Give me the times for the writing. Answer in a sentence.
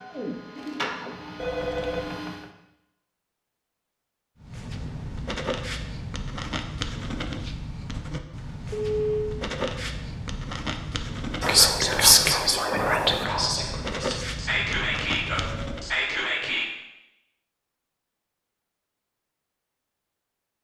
The writing can be heard from 4.3 to 15.8 s.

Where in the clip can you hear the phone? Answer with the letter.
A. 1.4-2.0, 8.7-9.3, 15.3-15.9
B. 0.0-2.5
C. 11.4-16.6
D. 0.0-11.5
A.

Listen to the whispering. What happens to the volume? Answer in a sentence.
The loudness of the whispering goes down, then up.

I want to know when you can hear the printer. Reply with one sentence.
The printer can be heard from 0.0 to 2.5 s.